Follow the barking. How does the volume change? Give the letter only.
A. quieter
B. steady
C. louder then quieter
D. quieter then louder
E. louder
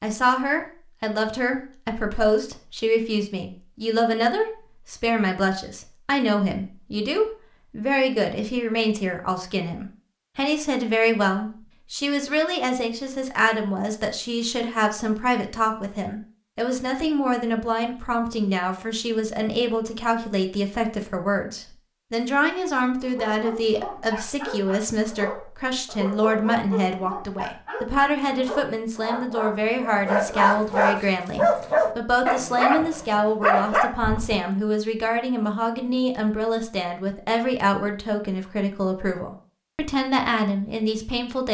E.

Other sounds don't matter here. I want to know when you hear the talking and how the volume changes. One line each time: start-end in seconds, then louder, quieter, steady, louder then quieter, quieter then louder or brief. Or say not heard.
0.0-41.4 steady.